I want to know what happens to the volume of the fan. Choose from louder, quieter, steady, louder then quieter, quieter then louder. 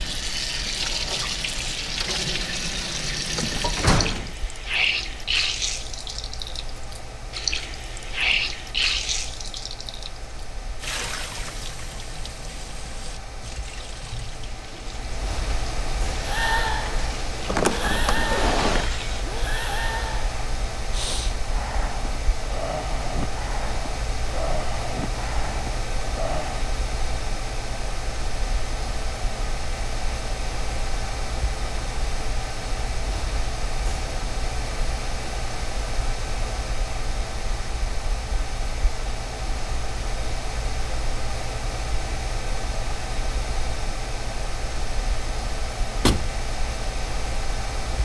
louder.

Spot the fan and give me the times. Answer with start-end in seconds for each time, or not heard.
0.0-47.9.